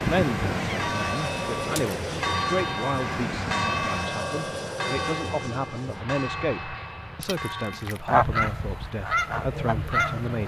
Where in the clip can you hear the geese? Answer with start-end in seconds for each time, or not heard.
0.0-4.0, 8.1-10.4.